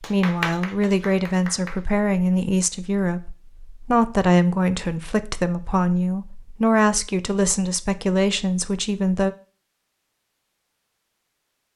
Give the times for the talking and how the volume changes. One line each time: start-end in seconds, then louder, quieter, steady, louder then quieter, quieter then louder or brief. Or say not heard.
0.0-9.3 steady.